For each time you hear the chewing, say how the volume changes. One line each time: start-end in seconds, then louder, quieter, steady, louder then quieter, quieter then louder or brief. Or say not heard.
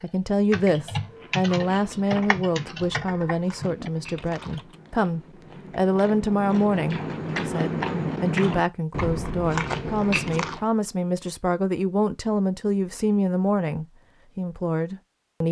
1.1-10.6 louder.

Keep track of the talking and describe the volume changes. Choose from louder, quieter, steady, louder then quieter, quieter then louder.
steady.